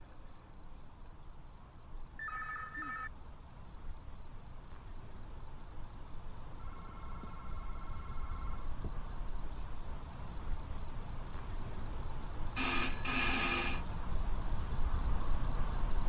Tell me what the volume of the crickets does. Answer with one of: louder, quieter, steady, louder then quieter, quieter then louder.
louder.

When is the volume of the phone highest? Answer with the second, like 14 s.
13 s.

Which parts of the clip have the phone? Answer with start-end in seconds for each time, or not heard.
2.1-3.1, 6.5-8.8, 12.6-13.8.